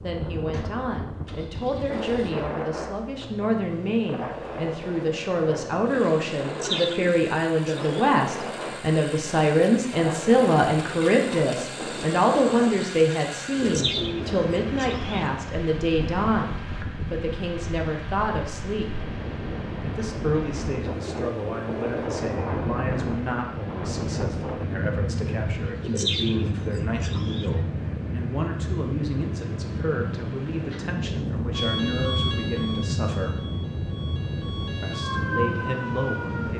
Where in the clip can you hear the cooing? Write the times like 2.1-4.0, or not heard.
6.5-8.1, 13.6-15.2, 25.8-27.5.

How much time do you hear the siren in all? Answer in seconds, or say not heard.
5 s.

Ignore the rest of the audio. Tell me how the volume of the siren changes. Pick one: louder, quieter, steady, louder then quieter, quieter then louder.
quieter then louder.